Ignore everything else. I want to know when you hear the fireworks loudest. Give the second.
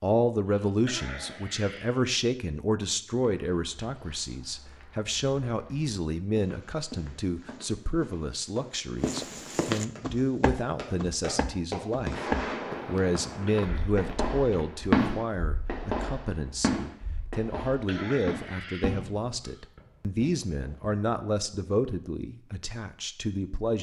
15 s.